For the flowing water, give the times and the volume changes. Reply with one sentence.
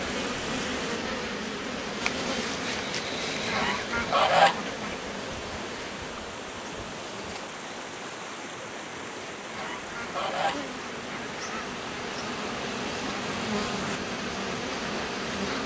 You can hear the flowing water from 0.0 to 15.6 s, at a steady volume.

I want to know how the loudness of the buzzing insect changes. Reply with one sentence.
The loudness of the buzzing insect goes down, then up.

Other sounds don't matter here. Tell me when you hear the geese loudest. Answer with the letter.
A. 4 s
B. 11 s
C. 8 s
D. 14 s
A.